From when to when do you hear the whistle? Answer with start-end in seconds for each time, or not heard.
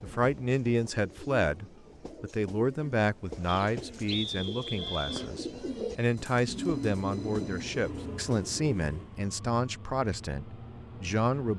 3.5-5.3.